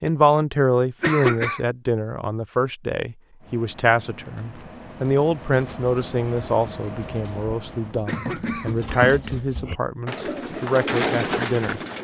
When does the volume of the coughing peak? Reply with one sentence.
The loudest moment of the coughing is at 1 second.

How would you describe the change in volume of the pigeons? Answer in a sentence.
The loudness of the pigeons goes up.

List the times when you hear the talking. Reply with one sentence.
You can hear the talking from 0.0 to 11.8 s.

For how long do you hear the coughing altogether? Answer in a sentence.
The coughing can be heard for 2 seconds in total.